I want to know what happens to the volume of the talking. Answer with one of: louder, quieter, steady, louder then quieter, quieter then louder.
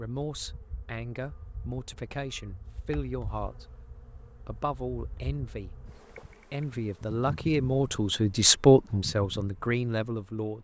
louder.